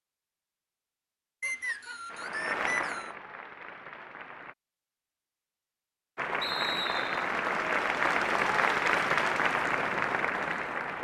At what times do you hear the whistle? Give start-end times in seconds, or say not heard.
1.4-3.1, 6.4-7.2.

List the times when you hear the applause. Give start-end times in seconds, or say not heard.
2.0-4.5, 6.2-10.9.